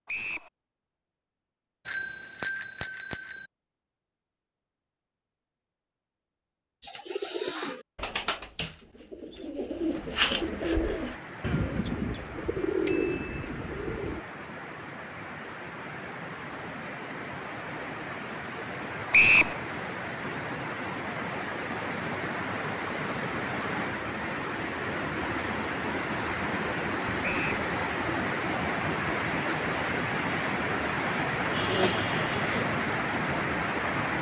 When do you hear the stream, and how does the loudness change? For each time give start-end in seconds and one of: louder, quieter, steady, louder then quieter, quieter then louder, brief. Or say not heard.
9.8-34.1 louder.